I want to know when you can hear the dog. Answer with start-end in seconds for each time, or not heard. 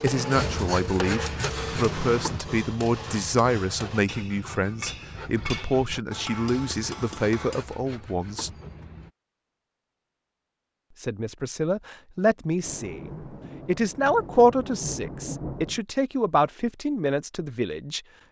not heard.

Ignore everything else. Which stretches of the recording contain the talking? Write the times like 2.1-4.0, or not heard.
0.0-8.5, 11.0-18.0.